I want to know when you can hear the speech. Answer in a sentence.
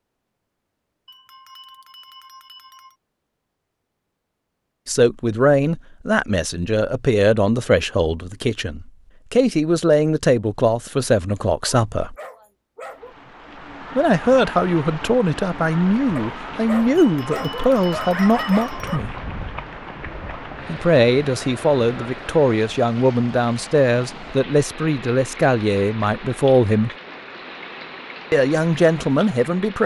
The speech can be heard from 4.8 to 12.2 s, from 13.9 to 19.1 s, from 20.6 to 26.9 s and from 28.3 to 29.8 s.